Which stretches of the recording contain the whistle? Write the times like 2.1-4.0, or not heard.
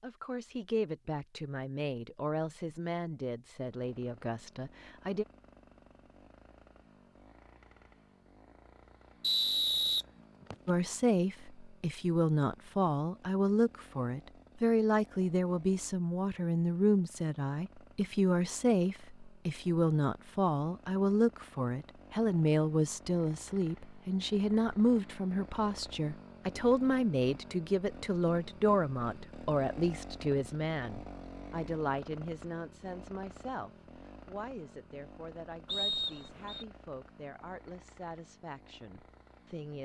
9.2-10.7, 35.6-36.6.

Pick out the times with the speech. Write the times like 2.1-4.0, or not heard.
0.0-5.2, 10.7-39.8.